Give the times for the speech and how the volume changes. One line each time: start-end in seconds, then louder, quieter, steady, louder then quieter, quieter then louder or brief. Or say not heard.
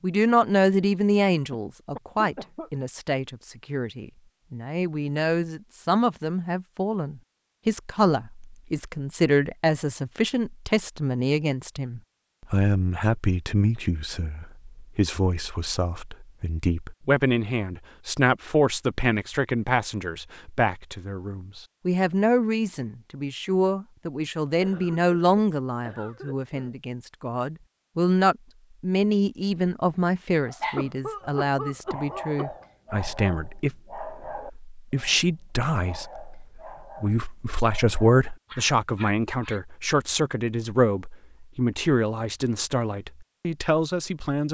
0.0-44.4 steady.